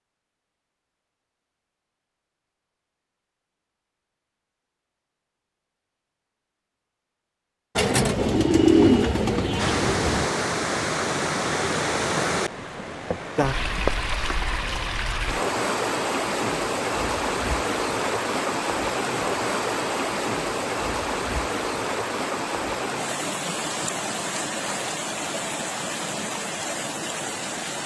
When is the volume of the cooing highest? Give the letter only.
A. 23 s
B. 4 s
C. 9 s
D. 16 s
C.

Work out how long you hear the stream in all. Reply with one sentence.
The stream can be heard for 18 seconds in total.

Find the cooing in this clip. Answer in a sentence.
You can hear the cooing from 7.8 to 10.3 s.